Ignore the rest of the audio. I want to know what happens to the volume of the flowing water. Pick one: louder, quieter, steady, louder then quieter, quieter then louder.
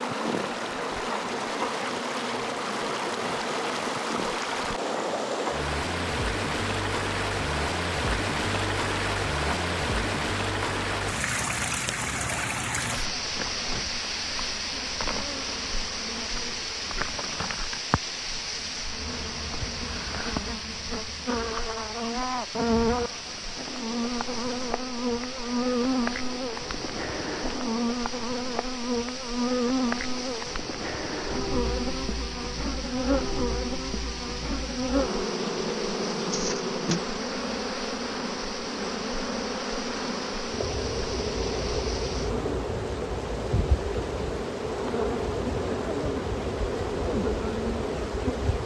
quieter.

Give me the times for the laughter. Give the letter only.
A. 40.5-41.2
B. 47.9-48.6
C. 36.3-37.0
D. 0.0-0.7
C.